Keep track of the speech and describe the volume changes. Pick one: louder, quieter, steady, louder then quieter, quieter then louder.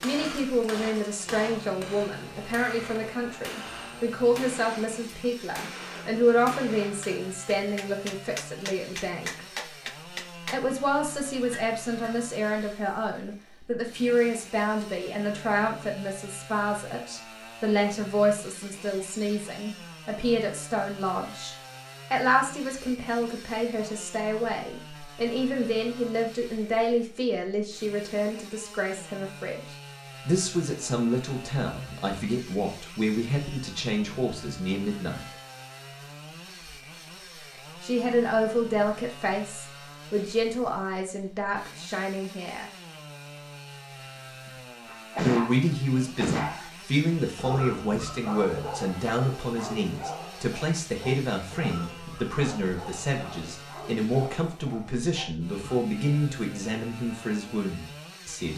steady.